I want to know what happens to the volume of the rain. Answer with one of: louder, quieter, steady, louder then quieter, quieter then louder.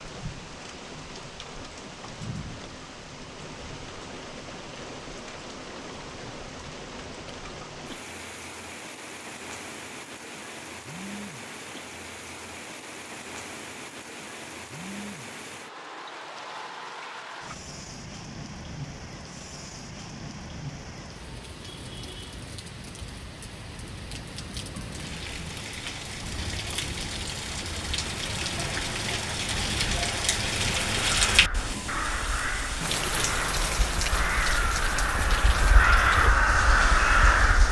louder.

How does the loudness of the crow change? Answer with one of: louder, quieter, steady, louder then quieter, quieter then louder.
louder.